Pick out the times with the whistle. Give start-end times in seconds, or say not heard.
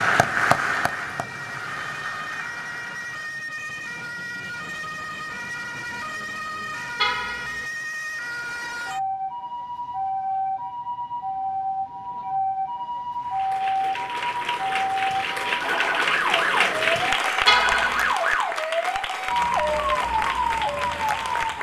not heard.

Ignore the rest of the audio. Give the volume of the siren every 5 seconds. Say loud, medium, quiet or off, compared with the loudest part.
medium, medium, loud, loud, loud.